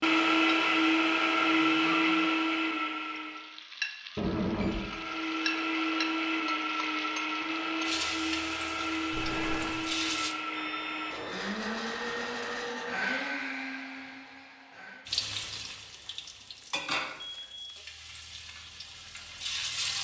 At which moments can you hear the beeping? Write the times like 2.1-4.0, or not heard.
4.2-4.8, 9.1-11.4, 17.1-17.6.